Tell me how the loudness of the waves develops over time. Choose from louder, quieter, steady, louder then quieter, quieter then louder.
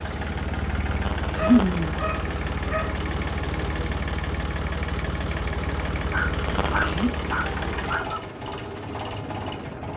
steady.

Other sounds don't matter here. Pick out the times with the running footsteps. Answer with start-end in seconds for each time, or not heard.
not heard.